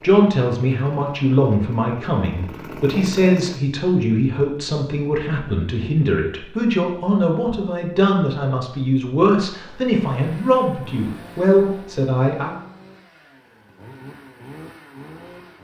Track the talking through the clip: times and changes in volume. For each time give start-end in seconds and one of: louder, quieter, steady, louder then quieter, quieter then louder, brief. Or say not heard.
0.0-12.6 steady.